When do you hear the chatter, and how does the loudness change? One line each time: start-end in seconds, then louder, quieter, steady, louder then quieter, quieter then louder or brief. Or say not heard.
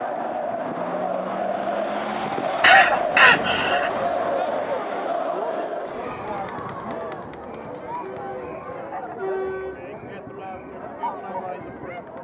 0.0-12.1 quieter.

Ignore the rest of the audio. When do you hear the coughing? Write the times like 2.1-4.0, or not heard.
2.6-3.9.